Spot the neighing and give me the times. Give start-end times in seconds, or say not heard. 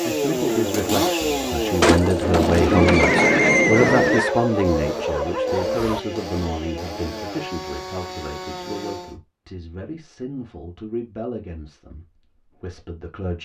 1.8-4.3.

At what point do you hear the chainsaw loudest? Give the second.
1 s.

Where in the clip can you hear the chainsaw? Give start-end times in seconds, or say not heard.
0.0-9.2.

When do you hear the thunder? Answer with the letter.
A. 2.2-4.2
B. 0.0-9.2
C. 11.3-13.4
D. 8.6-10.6
A.